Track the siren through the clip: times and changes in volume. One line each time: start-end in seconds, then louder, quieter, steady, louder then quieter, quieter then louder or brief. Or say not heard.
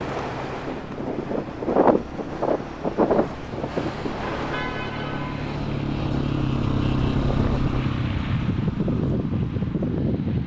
not heard.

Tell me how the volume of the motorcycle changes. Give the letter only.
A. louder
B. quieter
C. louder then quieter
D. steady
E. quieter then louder
C.